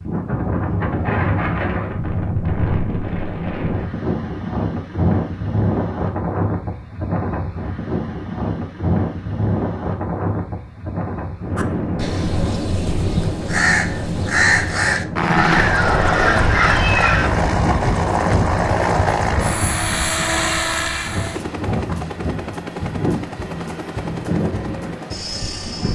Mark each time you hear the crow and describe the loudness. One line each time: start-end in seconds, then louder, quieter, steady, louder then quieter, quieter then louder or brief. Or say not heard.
11.6-17.3 louder.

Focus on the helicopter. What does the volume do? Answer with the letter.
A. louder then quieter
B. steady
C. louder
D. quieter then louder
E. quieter
E.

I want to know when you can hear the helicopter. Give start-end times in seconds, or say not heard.
15.2-25.9.